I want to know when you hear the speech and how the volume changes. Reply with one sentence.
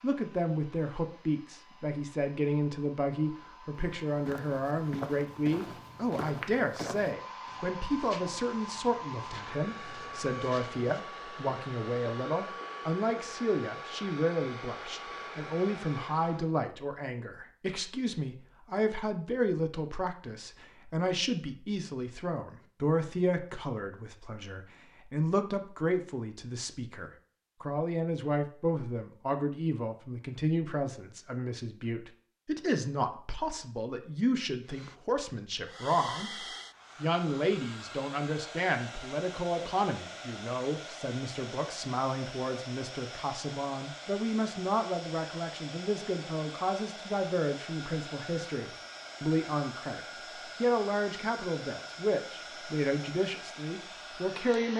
You can hear the speech from 0.0 to 54.7 s, at a steady volume.